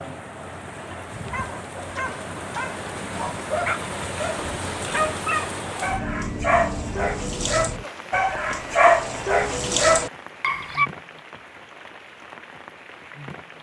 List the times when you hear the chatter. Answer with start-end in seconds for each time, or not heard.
not heard.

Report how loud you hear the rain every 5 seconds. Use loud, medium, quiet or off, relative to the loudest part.
loud, loud, medium.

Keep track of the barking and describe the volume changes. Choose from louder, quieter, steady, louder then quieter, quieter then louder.
louder.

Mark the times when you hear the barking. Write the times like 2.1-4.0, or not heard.
1.2-10.8.